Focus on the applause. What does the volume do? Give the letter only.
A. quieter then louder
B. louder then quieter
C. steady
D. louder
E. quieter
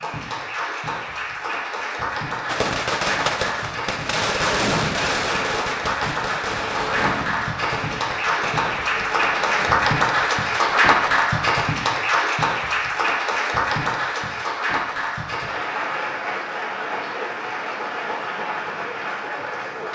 B.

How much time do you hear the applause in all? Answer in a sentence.
The applause can be heard for 20 seconds in total.